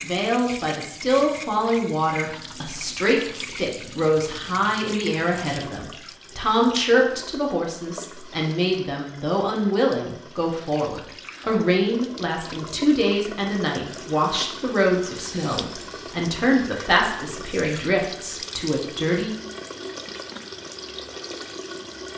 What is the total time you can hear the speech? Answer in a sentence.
The speech can be heard for 19 seconds in total.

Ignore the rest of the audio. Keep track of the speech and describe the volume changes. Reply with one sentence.
The volume of the speech stays about the same.